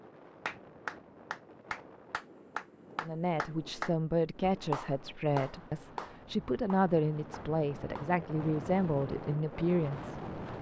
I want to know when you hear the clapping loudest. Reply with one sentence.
The loudest moment of the clapping is at 5 seconds.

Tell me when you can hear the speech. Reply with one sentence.
The speech can be heard from 3.0 to 10.2 s.